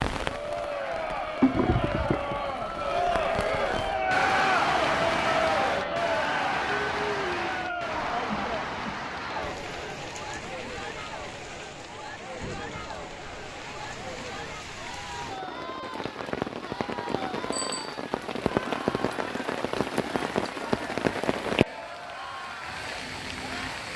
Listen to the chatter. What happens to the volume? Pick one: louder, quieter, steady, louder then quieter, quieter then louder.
quieter.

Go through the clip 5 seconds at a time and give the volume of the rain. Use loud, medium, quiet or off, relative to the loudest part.
loud, loud, medium, loud, loud.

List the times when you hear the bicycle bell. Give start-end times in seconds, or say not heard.
17.5-18.1.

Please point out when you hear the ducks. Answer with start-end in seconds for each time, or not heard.
not heard.